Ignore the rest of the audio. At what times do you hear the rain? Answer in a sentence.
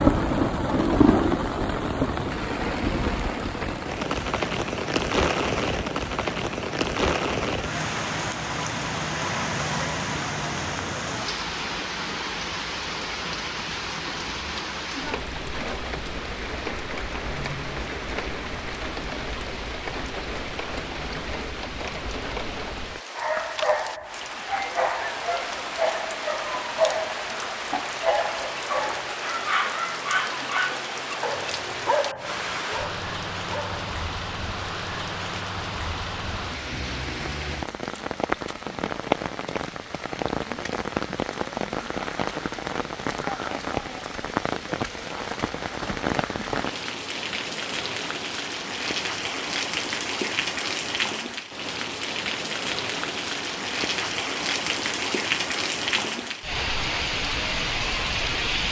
You can hear the rain from 0.0 to 58.6 s.